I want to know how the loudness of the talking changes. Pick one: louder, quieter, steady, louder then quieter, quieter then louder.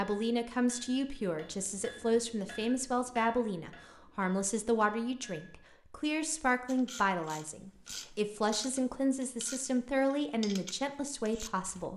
steady.